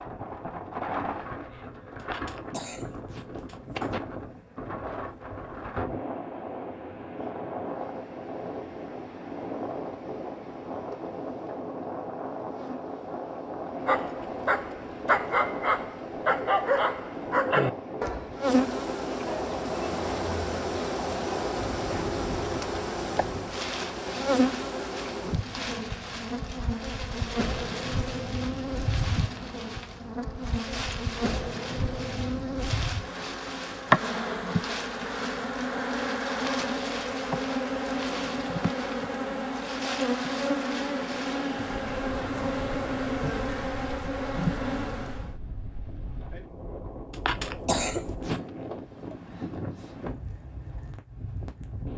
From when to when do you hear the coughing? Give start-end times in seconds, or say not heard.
2.0-4.0, 47.1-48.5.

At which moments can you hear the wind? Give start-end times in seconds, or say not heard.
0.0-51.9.